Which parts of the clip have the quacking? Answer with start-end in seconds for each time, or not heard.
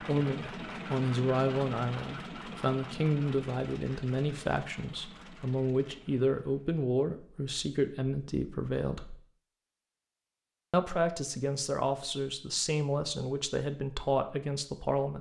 not heard.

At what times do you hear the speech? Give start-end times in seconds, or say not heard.
0.0-9.2, 10.7-15.1.